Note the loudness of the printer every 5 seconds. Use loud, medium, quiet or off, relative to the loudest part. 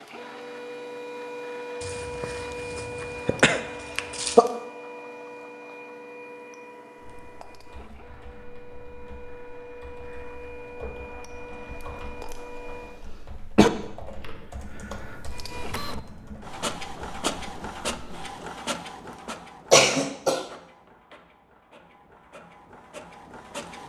loud, medium, medium, loud, medium.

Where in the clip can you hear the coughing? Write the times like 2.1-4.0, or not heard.
1.8-4.5, 11.7-13.7, 19.7-20.4.